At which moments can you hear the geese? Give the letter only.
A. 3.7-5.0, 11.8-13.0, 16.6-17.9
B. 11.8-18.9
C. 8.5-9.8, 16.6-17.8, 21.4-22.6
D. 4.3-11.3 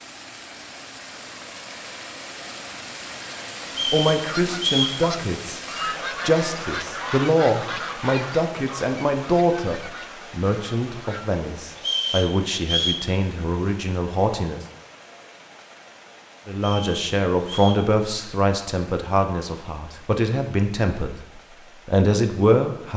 D.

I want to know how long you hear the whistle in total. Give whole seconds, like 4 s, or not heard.
4 s.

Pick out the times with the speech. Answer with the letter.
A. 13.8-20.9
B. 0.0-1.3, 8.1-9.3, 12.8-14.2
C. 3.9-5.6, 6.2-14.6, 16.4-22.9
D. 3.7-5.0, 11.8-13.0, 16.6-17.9
C.